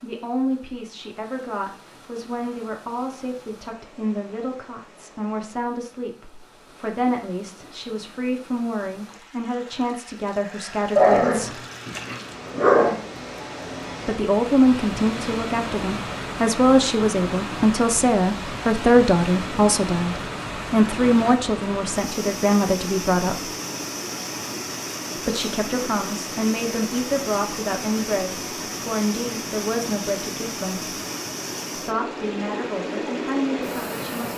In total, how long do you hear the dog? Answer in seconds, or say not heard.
2 s.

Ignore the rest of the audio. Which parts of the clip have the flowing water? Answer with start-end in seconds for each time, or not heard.
0.0-34.3.